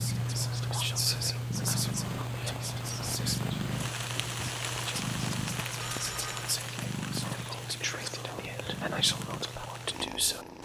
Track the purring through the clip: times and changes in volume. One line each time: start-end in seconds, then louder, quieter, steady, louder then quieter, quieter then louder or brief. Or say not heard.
0.0-10.6 quieter.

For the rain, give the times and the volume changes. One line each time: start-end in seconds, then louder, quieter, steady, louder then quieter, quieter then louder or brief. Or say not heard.
0.0-10.6 louder then quieter.